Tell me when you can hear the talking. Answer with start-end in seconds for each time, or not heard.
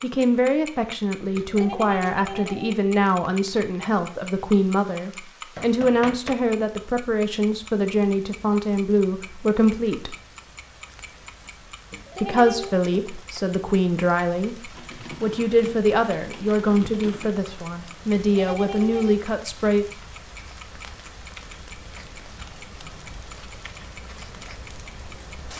0.0-10.2, 12.2-19.9.